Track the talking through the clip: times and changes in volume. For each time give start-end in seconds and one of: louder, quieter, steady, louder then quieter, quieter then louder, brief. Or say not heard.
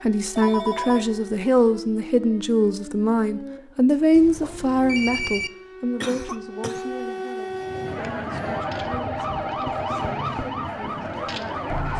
0.0-11.9 quieter.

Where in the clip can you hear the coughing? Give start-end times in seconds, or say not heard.
6.0-7.0.